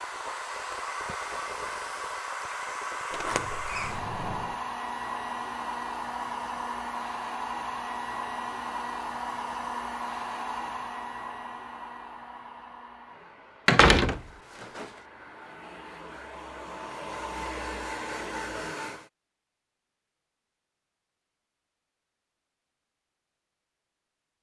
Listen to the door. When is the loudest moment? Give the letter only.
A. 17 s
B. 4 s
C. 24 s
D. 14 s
D.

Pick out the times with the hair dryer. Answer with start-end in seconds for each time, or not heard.
0.0-19.1.